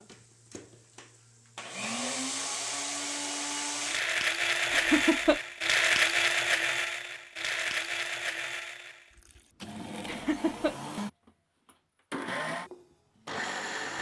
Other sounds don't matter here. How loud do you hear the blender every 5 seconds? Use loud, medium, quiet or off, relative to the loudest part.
loud, loud, medium.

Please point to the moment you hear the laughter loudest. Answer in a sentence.
The loudest moment of the laughter is at 5 seconds.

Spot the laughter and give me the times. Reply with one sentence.
You can hear the laughter from 4.7 to 5.4 s and from 10.1 to 10.8 s.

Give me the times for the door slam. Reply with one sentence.
The door slam can't be heard in this clip.